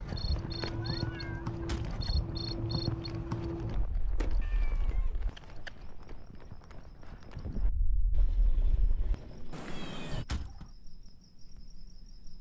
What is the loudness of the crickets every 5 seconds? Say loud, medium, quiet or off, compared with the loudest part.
loud, quiet, quiet.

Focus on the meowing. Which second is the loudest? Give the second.
10 s.